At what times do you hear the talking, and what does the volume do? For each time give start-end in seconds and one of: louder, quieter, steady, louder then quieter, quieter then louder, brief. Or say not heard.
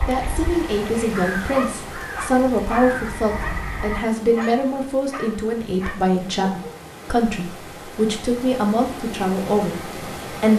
0.1-10.5 steady.